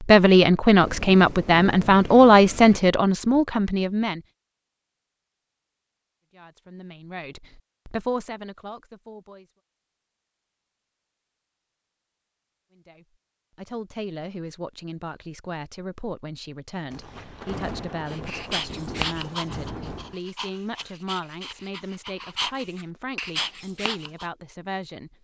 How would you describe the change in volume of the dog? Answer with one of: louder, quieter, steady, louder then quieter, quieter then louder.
quieter then louder.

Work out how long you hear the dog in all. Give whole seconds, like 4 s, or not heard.
6 s.